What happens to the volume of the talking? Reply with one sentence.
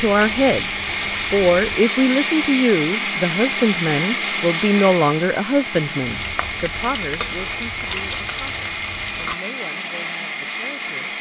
The loudness of the talking goes down.